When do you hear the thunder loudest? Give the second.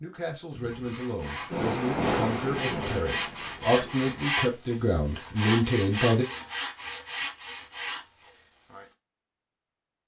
2 s.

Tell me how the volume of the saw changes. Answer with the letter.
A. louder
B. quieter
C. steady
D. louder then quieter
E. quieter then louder
D.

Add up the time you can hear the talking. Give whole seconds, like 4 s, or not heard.
6 s.